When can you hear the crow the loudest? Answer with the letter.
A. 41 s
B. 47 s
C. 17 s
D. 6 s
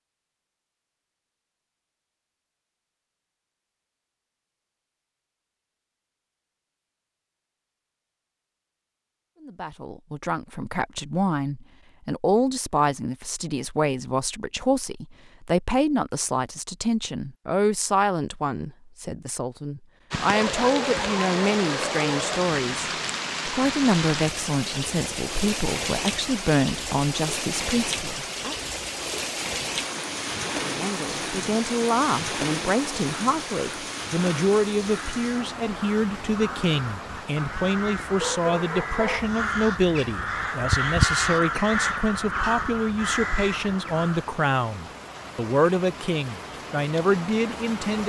A.